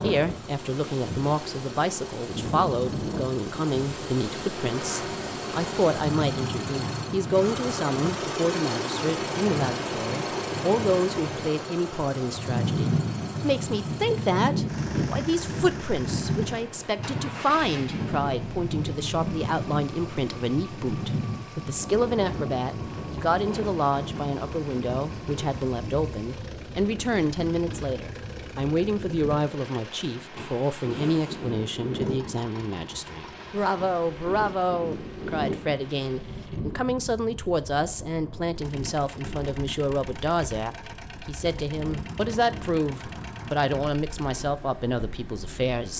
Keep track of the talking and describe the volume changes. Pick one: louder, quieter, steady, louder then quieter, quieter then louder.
steady.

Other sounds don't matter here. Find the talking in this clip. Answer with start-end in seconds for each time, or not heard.
0.0-45.9.